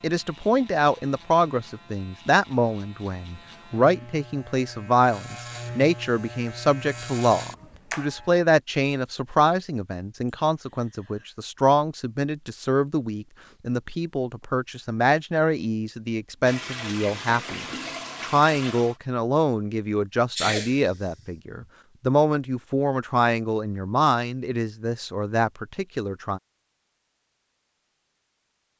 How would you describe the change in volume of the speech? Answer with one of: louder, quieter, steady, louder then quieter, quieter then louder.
steady.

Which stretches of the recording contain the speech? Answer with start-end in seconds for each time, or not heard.
0.0-26.4.